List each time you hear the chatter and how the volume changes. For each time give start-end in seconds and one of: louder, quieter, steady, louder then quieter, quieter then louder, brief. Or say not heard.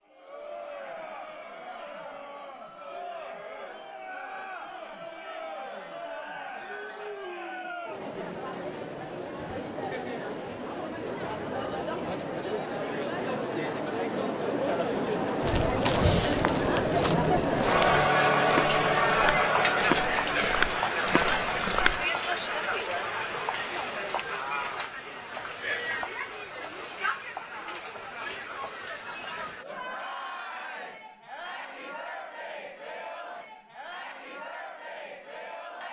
0.1-35.8 louder then quieter.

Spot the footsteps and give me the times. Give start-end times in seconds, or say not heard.
15.4-22.1.